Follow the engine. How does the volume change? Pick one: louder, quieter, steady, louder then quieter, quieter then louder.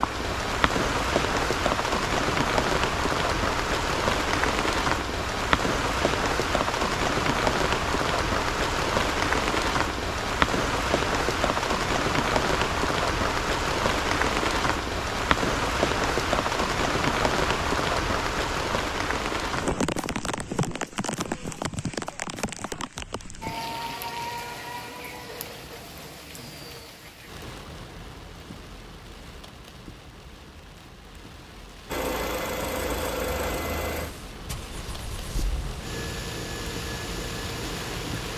quieter then louder.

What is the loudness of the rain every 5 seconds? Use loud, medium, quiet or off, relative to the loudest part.
loud, loud, loud, loud, medium, quiet, quiet, quiet.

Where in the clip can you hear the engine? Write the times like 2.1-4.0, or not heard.
31.9-38.3.